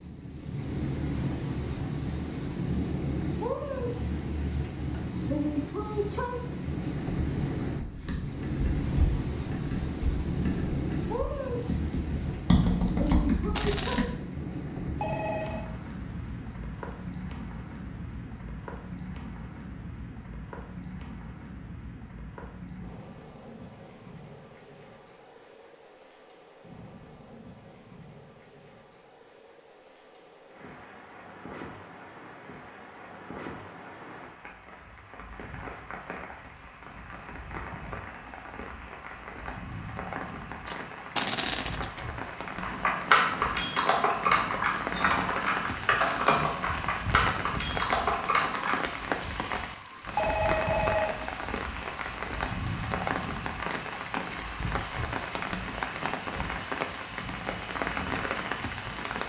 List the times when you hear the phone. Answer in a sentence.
You can hear the phone from 15.0 to 15.7 s and from 50.1 to 51.2 s.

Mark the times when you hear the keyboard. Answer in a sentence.
You can hear the keyboard from 7.8 to 14.1 s and from 42.6 to 48.9 s.